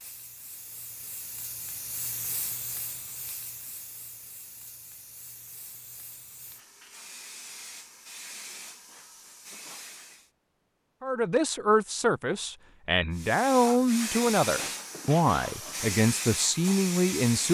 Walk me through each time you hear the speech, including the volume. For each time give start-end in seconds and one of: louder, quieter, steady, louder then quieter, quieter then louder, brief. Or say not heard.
11.0-17.5 steady.